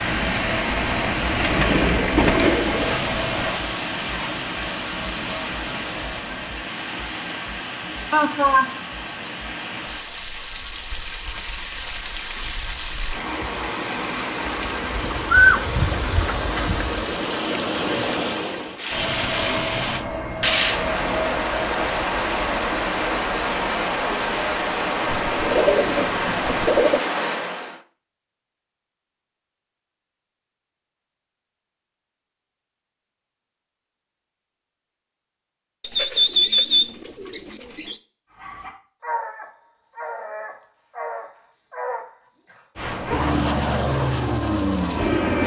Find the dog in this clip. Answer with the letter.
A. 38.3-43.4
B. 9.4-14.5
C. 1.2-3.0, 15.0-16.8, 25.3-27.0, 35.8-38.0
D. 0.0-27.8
A.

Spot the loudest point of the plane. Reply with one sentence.
The volume of the plane peaks at 45 seconds.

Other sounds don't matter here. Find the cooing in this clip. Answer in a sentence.
The cooing can be heard from 1.2 to 3.0 s, from 15.0 to 16.8 s, from 25.3 to 27.0 s and from 35.8 to 38.0 s.